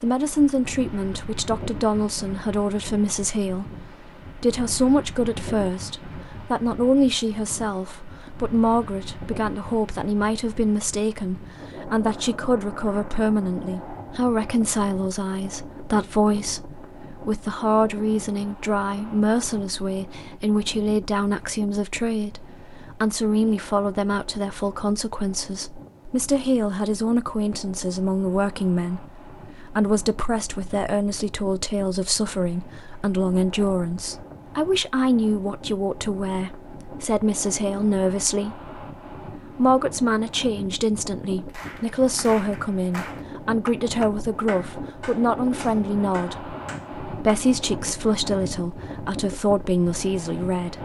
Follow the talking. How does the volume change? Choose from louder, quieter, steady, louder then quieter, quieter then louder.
steady.